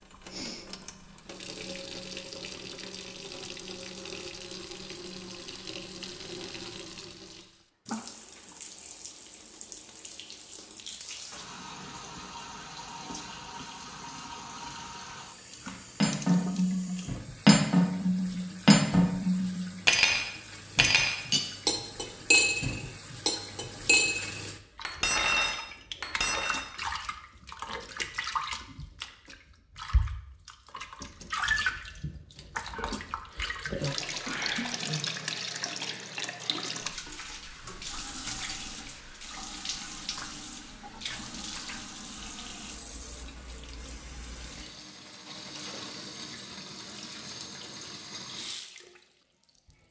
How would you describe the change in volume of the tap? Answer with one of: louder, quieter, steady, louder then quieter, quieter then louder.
louder then quieter.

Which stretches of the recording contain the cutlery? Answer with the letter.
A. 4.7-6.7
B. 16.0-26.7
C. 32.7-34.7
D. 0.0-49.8
B.